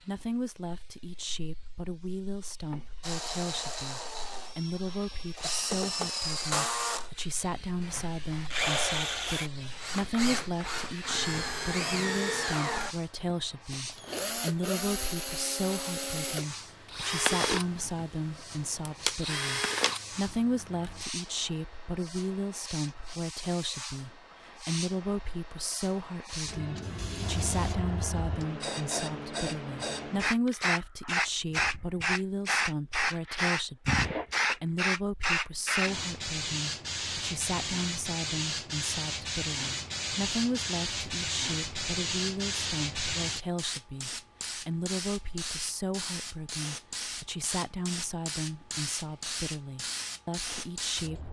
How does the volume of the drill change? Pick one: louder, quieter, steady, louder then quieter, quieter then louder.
steady.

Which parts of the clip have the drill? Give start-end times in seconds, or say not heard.
3.0-21.1.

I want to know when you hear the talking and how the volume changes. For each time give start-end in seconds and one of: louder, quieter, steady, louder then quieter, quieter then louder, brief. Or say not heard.
0.0-51.2 steady.